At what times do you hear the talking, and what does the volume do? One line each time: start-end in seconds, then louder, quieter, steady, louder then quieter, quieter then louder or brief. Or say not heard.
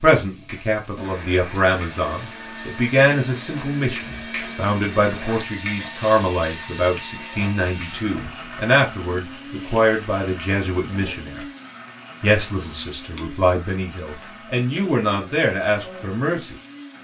0.0-11.4 steady
12.2-16.6 louder.